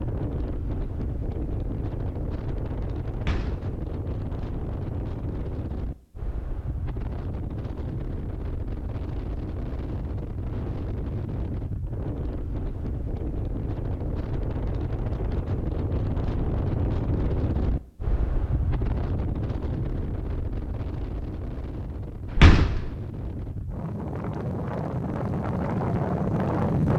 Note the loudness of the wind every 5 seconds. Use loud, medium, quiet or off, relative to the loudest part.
medium, medium, medium, medium, medium, loud.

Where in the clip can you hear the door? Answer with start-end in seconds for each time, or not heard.
3.1-3.8, 22.3-22.9.